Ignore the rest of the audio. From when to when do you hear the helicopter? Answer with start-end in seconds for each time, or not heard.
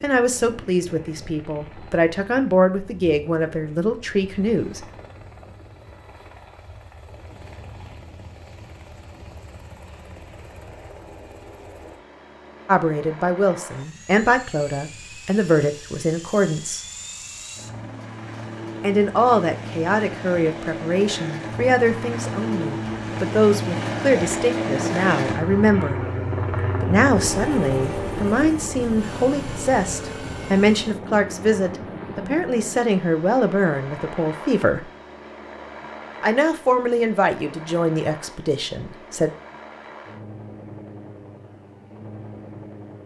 0.0-43.0.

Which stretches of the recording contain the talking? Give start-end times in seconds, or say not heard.
0.0-4.8, 12.7-16.8, 18.8-26.0, 26.8-34.9, 36.2-39.3.